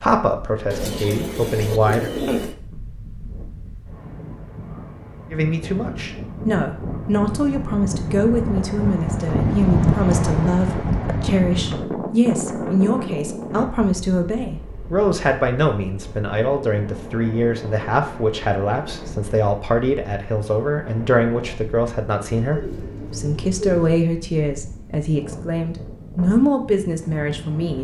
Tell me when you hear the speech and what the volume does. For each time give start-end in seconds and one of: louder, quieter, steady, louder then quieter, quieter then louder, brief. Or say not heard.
0.0-2.1 brief
5.3-27.7 steady.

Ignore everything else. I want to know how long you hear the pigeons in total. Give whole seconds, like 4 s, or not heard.
4 s.